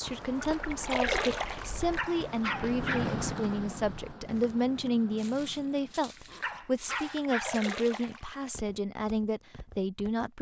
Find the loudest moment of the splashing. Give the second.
1 s.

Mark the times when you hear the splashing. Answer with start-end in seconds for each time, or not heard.
0.3-2.0, 7.0-8.5.